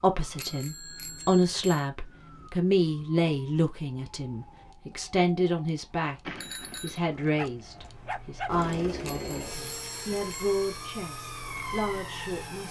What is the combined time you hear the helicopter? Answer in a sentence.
You can hear the helicopter for 4 seconds altogether.